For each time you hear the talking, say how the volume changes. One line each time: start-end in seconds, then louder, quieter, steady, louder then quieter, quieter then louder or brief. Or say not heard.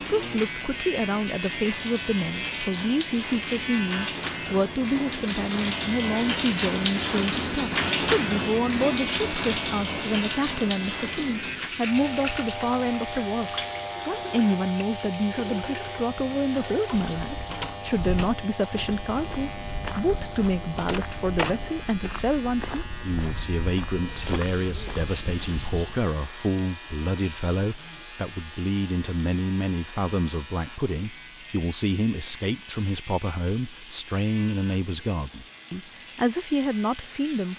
0.0-37.5 steady.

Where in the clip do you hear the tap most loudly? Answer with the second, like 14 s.
8 s.